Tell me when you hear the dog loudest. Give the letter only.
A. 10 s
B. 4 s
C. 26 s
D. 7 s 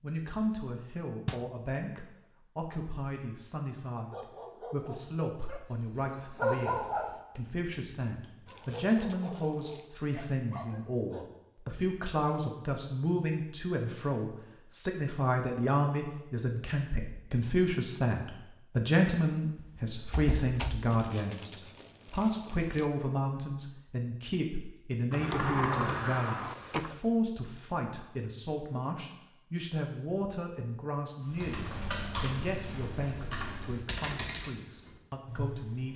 D.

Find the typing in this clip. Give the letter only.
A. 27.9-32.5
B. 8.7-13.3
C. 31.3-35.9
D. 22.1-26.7
C.